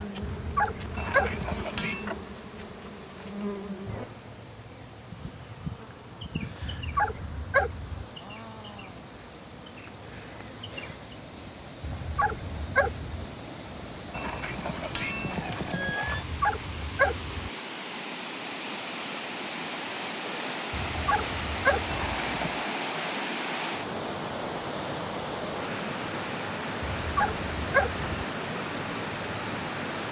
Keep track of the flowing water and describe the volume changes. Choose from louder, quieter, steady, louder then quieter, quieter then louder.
louder.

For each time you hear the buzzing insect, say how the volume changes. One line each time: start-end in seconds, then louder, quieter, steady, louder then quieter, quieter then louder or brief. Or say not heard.
0.0-11.2 quieter.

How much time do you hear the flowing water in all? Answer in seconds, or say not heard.
30 s.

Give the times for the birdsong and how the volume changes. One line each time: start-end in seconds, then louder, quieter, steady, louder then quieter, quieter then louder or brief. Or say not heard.
not heard.